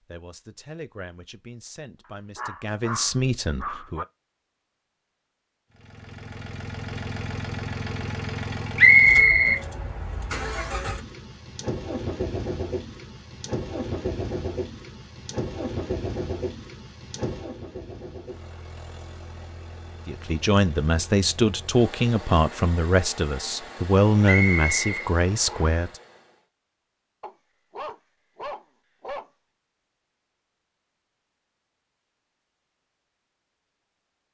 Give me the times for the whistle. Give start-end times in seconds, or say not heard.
8.8-9.6, 24.2-25.8.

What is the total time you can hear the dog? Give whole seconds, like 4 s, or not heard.
4 s.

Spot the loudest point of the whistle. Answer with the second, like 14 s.
9 s.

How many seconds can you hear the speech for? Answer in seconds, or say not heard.
10 s.